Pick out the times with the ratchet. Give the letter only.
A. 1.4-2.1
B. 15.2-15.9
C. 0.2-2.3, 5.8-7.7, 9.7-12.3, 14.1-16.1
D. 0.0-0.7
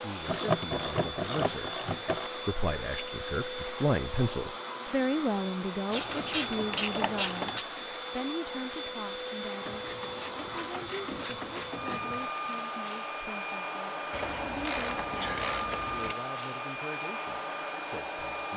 C.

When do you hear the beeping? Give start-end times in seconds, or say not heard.
not heard.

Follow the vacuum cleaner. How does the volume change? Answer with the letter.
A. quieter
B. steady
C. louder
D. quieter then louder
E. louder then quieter
B.